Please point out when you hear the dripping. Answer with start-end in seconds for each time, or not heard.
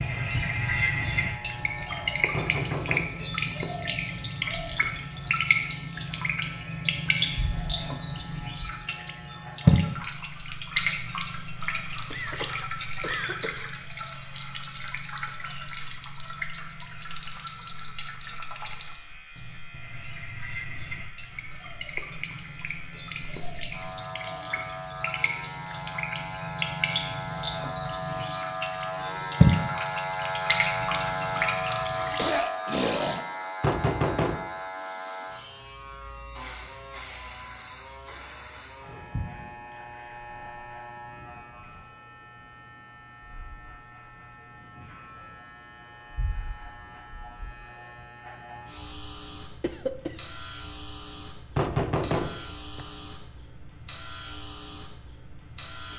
0.0-32.4.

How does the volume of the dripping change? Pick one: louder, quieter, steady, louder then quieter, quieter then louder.
quieter then louder.